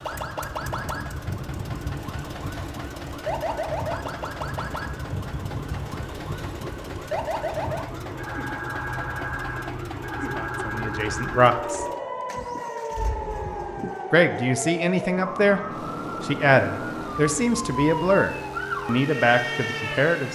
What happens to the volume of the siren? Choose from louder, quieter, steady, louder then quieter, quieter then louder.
steady.